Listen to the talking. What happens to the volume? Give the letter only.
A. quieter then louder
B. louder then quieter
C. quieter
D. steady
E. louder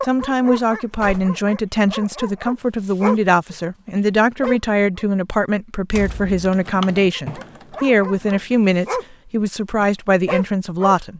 D.